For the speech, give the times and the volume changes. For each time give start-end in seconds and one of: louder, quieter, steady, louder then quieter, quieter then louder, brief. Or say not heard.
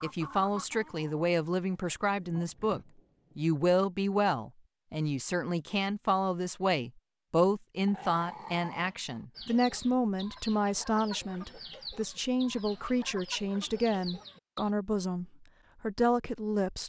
0.0-16.8 steady.